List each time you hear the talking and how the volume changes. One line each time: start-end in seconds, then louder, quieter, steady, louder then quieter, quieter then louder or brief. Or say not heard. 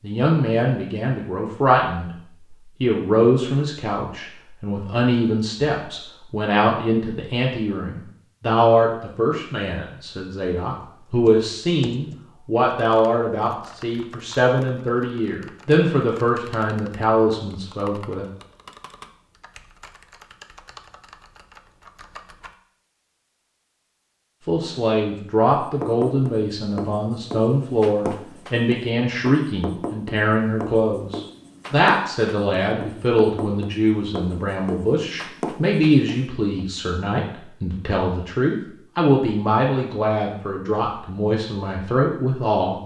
0.0-2.1 brief
2.8-18.2 steady
24.4-42.8 steady.